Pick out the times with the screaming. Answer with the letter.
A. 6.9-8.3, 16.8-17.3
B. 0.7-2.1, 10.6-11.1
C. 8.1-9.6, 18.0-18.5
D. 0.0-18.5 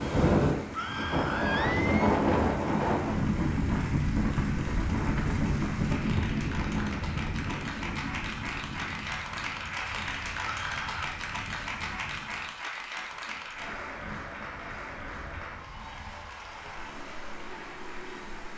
B.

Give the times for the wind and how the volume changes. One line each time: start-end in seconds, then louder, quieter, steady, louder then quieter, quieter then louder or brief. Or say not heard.
0.0-18.5 quieter.